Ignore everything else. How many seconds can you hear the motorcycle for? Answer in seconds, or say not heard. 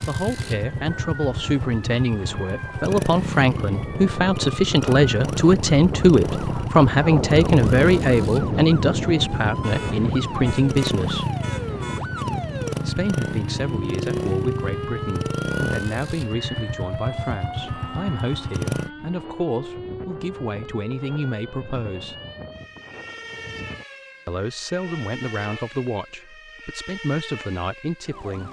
19 s.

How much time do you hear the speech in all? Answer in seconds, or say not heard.
25 s.